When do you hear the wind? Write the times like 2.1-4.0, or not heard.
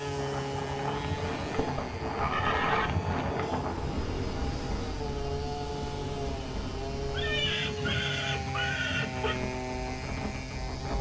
0.0-10.9.